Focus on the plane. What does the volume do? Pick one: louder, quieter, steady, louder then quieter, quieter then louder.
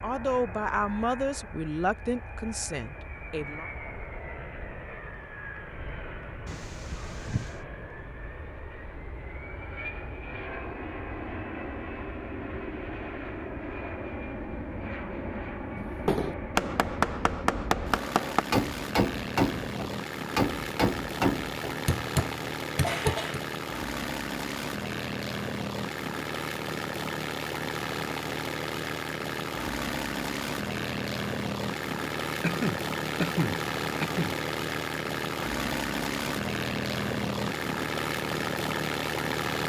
louder.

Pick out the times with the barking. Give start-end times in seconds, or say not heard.
not heard.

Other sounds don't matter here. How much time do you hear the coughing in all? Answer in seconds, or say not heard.
4 s.